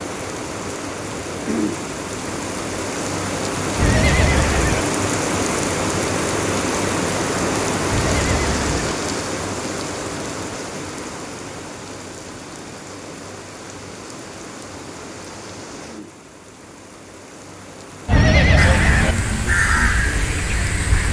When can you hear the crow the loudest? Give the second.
20 s.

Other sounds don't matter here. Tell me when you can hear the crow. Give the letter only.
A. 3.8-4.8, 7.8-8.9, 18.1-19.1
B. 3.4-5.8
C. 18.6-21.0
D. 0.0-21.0
C.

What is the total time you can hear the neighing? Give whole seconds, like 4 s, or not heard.
3 s.